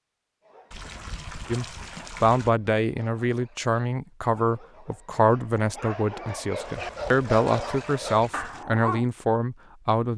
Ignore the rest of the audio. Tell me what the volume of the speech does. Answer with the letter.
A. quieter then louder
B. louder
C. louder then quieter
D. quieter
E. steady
E.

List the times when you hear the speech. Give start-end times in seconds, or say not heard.
1.5-10.1.